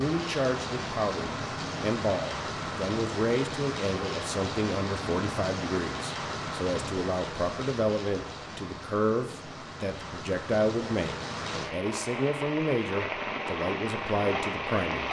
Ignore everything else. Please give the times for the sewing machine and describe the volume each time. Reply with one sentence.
The sewing machine can't be heard in this clip.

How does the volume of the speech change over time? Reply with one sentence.
The volume of the speech stays about the same.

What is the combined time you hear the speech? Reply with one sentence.
The speech can be heard for 15 seconds in total.